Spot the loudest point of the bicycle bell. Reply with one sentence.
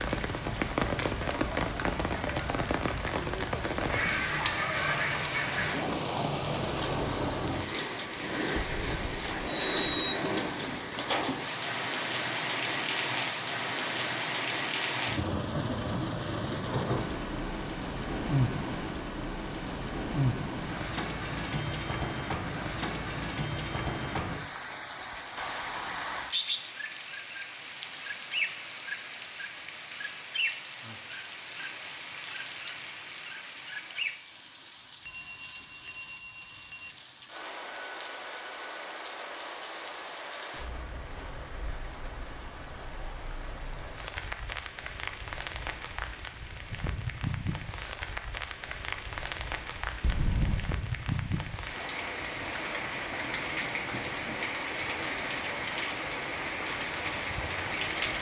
The volume of the bicycle bell peaks at 10 seconds.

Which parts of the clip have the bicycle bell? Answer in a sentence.
The bicycle bell can be heard from 8.6 to 10.1 s, from 35.0 to 36.9 s and from 50.0 to 50.6 s.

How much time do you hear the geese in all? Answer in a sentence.
The geese can be heard for 2 seconds in total.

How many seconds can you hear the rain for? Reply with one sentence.
The rain can be heard for 58 seconds in total.